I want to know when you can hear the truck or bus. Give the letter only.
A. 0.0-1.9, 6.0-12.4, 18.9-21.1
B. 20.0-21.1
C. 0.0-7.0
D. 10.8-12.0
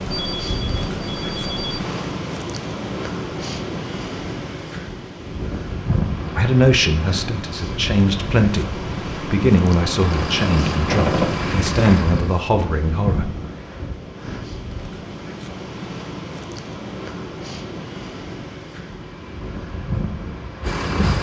A.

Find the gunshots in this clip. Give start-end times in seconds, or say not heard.
10.8-12.0.